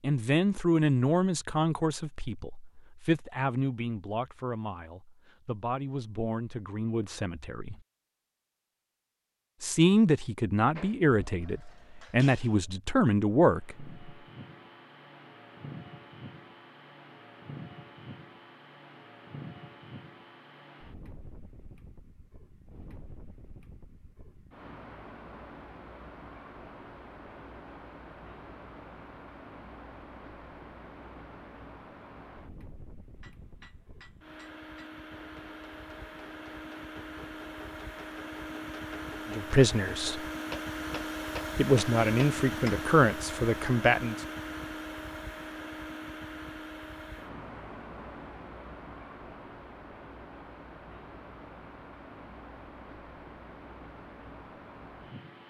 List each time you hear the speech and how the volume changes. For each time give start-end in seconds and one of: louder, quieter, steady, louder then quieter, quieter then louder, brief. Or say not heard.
0.0-7.8 quieter
9.6-13.9 quieter then louder
39.3-40.2 brief
41.5-44.2 brief.